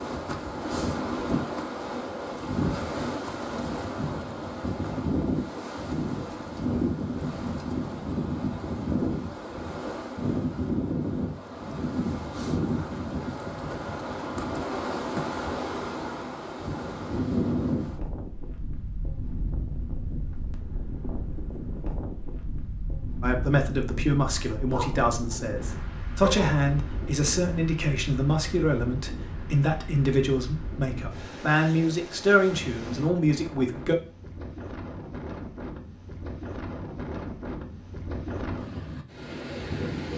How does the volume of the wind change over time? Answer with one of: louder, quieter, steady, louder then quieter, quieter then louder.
quieter.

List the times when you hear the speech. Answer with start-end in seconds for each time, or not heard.
23.2-34.0.